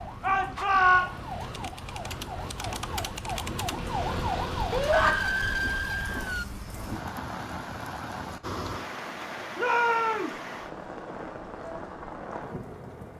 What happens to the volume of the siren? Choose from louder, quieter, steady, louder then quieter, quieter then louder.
louder.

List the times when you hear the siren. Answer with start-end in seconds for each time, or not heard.
0.0-6.5.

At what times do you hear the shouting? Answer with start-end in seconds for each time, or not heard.
0.2-1.1, 4.7-5.2, 9.6-10.3.